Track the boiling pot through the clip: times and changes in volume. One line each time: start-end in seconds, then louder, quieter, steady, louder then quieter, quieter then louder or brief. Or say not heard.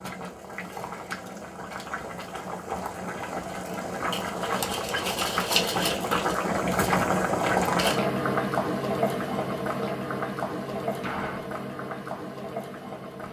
0.0-13.2 louder then quieter.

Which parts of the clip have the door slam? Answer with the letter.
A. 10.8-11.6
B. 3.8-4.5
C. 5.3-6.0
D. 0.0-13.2
A.